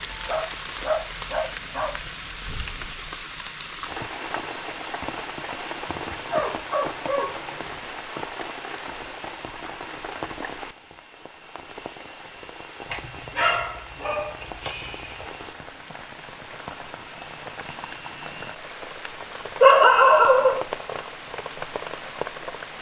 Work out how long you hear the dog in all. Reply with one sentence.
You can hear the dog for 7 seconds altogether.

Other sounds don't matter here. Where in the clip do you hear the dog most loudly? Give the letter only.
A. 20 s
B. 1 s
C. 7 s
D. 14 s
A.